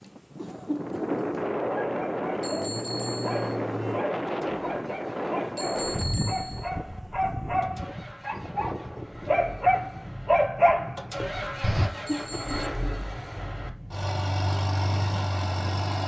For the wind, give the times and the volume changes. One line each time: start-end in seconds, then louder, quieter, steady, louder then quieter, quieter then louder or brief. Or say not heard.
0.0-15.9 quieter.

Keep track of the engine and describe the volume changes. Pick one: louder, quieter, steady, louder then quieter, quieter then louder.
quieter then louder.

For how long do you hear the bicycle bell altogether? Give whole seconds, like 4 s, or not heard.
3 s.